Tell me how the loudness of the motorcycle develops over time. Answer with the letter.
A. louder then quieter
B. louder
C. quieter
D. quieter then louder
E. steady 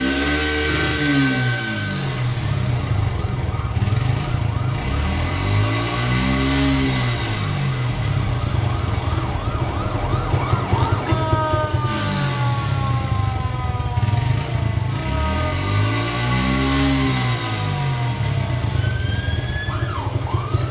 E.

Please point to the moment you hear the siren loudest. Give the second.
11 s.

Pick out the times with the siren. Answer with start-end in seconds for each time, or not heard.
0.0-20.6.